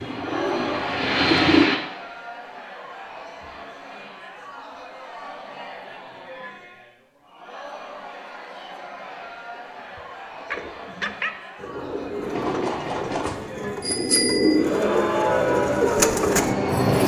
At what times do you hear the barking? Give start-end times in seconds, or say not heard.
9.6-11.3.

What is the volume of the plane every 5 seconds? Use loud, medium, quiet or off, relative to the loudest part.
loud, off, off, loud.